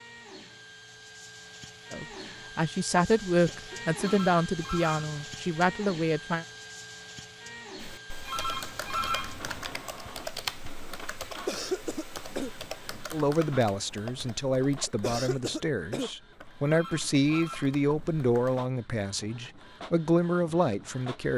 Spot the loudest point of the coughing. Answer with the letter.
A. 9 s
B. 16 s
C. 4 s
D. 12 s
D.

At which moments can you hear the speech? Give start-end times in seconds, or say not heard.
1.9-6.5, 13.1-21.3.